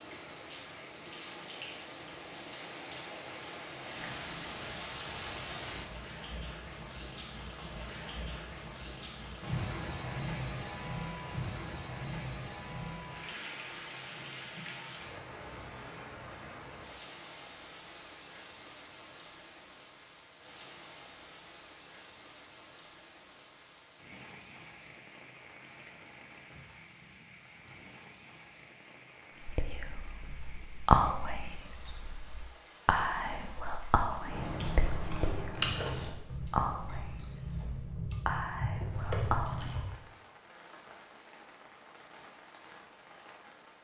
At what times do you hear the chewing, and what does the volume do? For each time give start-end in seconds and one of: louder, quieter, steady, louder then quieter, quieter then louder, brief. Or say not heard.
34.3-39.9 quieter then louder.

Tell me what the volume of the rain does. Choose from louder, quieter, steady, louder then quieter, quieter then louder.
quieter.